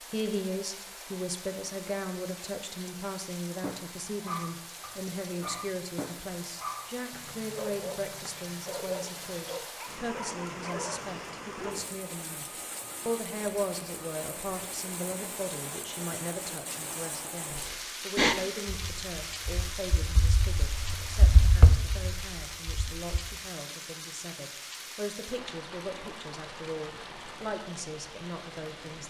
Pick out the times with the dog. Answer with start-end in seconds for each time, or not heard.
3.6-11.8.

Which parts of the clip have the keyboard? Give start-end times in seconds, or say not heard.
17.5-23.2.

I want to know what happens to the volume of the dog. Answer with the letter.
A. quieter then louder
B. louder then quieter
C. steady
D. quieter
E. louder
C.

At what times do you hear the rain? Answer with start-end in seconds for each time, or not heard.
0.0-29.0.